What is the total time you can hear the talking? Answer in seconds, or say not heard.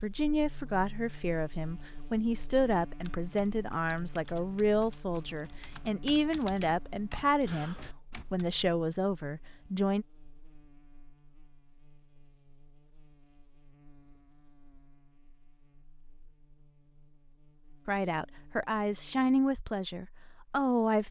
13 s.